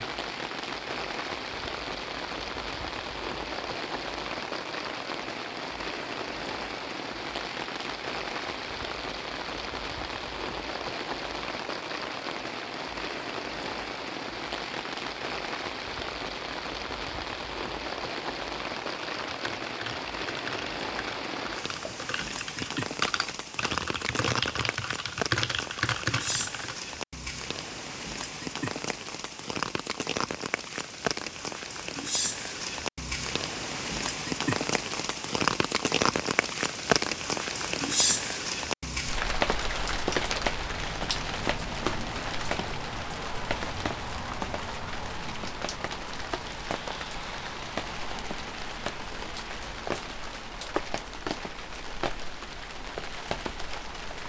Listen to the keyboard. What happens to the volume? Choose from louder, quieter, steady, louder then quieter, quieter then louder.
louder.